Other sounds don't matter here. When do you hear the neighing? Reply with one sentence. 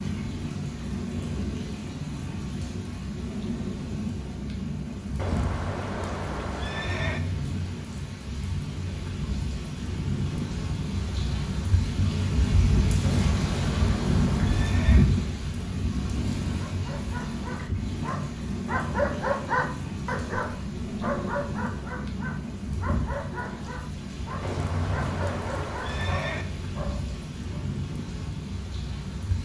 You can hear the neighing from 5.2 to 7.2 s, from 13.0 to 15.1 s and from 24.4 to 26.4 s.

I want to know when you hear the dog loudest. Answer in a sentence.
The volume of the dog peaks at 19 seconds.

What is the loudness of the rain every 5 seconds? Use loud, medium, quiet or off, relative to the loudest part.
medium, medium, loud, loud, medium, medium.